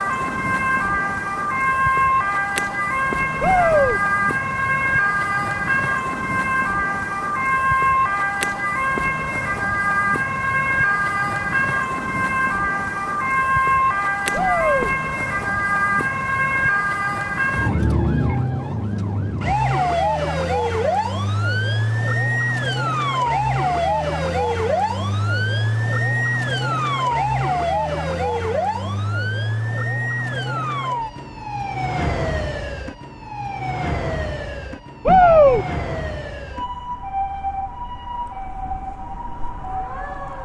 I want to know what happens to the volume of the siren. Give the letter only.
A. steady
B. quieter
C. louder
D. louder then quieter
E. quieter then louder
B.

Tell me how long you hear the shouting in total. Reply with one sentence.
The shouting can be heard for 2 seconds in total.